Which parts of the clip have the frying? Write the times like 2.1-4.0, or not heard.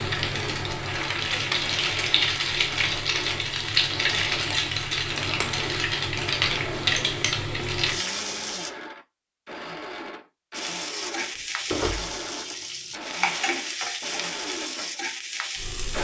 0.0-8.7, 10.5-15.9.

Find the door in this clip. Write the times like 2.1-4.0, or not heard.
11.2-12.2.